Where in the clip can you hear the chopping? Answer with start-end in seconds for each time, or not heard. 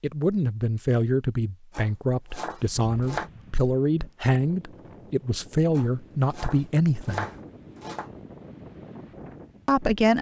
1.7-3.3, 5.8-8.1.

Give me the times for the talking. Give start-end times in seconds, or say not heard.
0.0-7.2, 9.7-10.1.